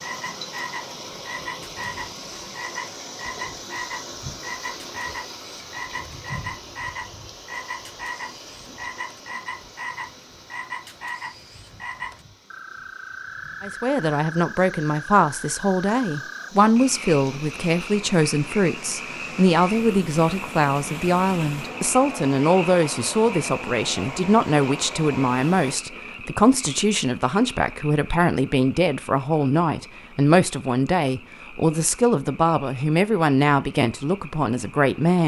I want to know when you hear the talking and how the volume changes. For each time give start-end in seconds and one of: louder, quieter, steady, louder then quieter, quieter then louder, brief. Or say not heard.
13.6-35.2 steady.